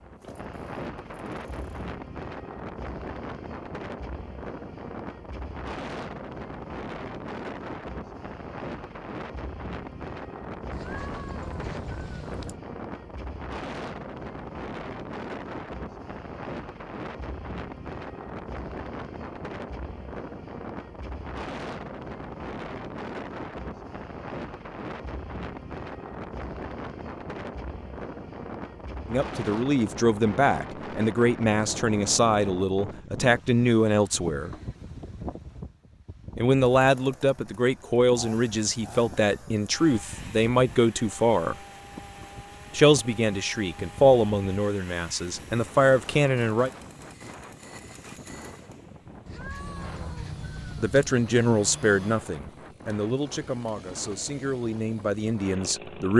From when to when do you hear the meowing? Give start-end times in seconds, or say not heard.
10.7-12.6, 49.2-51.0.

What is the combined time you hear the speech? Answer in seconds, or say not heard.
20 s.